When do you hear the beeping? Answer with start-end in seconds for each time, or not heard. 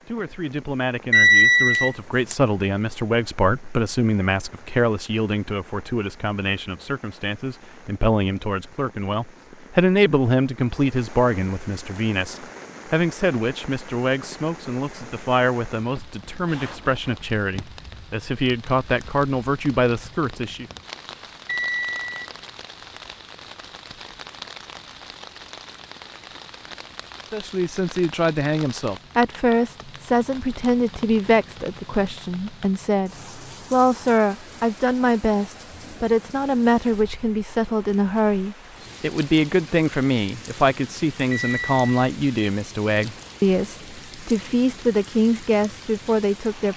1.1-2.4, 21.4-22.2, 41.3-42.1.